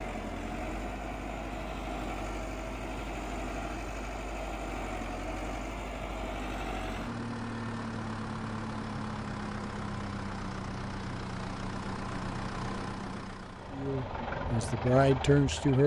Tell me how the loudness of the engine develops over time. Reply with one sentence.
The volume of the engine stays about the same.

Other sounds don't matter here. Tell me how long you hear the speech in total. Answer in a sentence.
You can hear the speech for 2 seconds altogether.